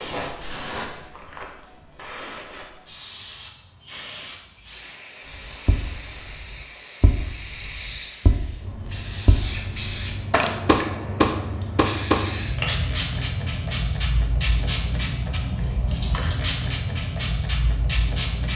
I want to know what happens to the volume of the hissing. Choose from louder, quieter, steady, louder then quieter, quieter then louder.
louder.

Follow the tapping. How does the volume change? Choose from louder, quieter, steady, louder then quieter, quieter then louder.
louder.